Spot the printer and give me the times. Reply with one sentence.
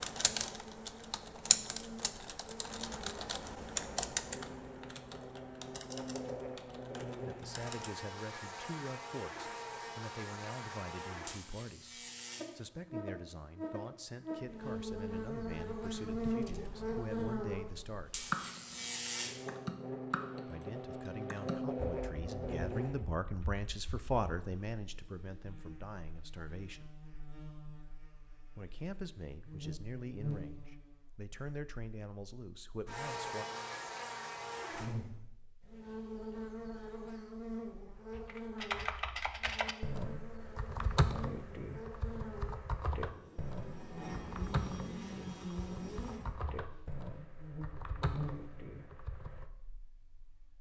The printer can't be heard in this clip.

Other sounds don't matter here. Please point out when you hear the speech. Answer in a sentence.
You can hear the speech from 7.2 to 18.2 s, from 20.4 to 26.9 s and from 28.6 to 33.5 s.